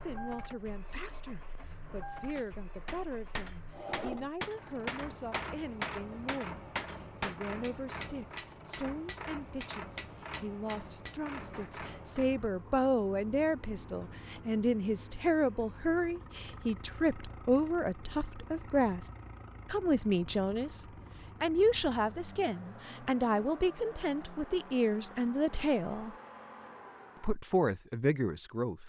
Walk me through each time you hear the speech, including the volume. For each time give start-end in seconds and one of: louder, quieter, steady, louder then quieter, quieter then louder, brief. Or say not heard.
0.0-26.1 louder
27.2-28.8 brief.